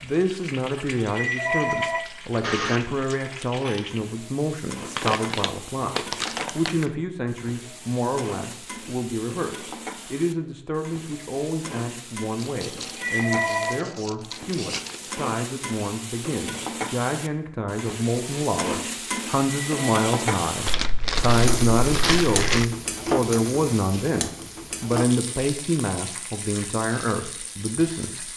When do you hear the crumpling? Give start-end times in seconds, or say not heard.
5.0-6.9, 12.3-15.2, 20.6-22.6.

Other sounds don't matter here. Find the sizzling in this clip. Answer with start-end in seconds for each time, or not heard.
0.0-28.3.